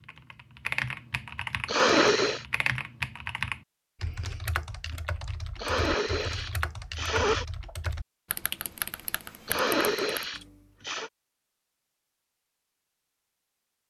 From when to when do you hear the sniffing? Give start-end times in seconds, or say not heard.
1.6-2.5, 5.5-7.5, 9.4-11.1.